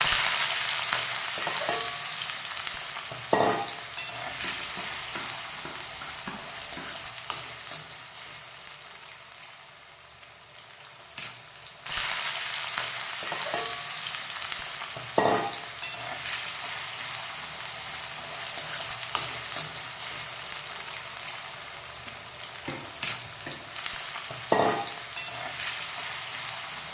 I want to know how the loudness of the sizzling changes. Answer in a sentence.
The volume of the sizzling goes down, then up.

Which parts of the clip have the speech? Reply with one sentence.
You can't hear the speech here.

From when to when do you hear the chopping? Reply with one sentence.
You can hear the chopping from 4.2 to 7.0 s and from 21.8 to 23.6 s.